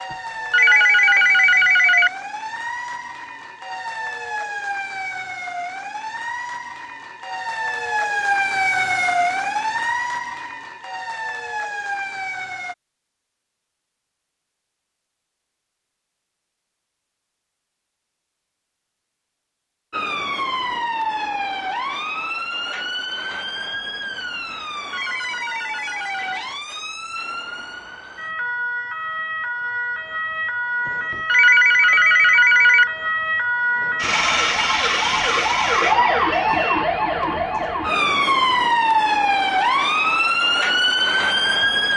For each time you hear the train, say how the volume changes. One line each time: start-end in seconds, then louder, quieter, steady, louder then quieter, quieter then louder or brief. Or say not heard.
not heard.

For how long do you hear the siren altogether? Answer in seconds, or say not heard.
35 s.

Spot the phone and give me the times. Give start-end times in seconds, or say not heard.
0.1-2.1, 24.9-26.4, 30.9-32.9.